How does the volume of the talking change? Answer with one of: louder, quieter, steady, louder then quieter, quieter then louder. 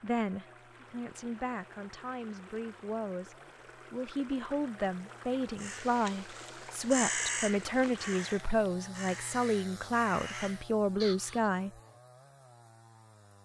louder.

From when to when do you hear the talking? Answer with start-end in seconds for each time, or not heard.
0.0-11.7.